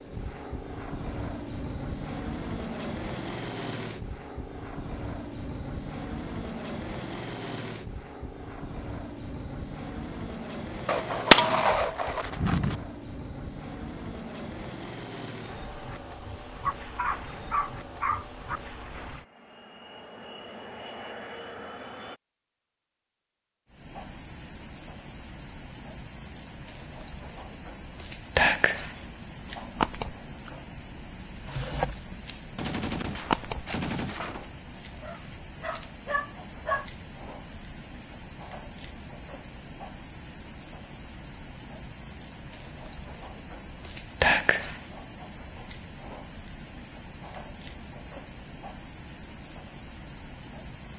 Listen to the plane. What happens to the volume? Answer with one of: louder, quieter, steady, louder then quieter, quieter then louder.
quieter.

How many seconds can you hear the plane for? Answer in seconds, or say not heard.
22 s.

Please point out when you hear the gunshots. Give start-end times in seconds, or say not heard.
10.8-12.8, 32.5-34.5.